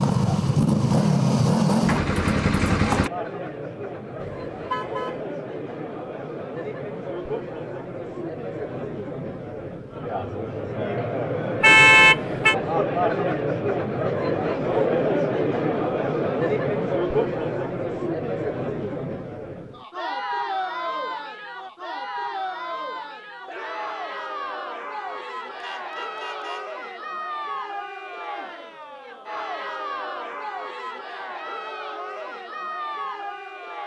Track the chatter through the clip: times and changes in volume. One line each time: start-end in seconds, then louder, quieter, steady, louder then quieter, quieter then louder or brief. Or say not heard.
0.1-33.8 louder then quieter.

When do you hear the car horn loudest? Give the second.
12 s.